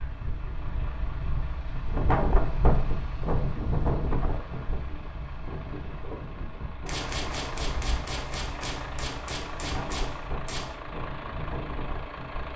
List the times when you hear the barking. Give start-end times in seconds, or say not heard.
not heard.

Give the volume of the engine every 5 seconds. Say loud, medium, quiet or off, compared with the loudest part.
medium, loud, loud.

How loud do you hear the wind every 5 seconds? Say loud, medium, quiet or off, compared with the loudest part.
loud, medium, medium.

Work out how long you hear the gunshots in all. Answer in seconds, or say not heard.
4 s.